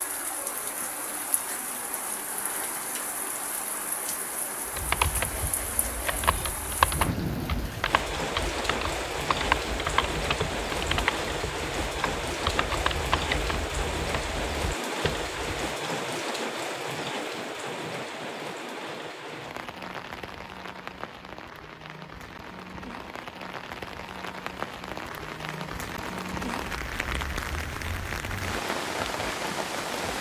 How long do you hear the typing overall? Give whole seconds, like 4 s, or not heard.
11 s.